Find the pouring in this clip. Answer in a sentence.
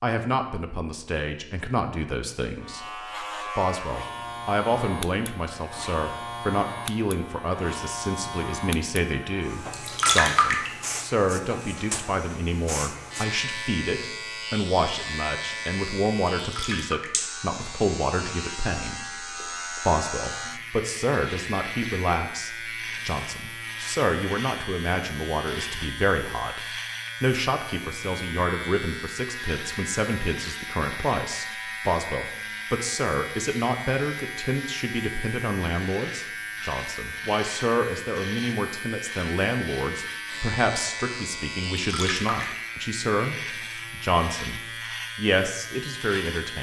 You can hear the pouring from 9.7 to 10.7 s, from 16.4 to 17.2 s and from 41.8 to 42.6 s.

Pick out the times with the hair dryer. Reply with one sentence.
You can't hear the hair dryer here.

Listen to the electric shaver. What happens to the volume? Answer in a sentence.
The loudness of the electric shaver stays about the same.